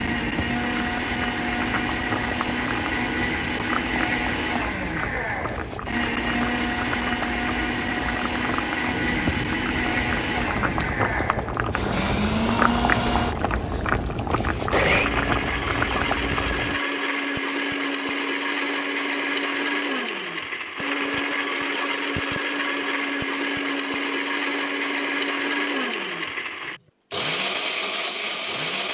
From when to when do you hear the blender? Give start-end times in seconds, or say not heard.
0.0-28.8.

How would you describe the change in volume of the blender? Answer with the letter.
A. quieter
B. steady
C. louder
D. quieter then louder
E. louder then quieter
B.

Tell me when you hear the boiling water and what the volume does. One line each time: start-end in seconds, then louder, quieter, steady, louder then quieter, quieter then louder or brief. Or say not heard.
0.0-16.8 louder.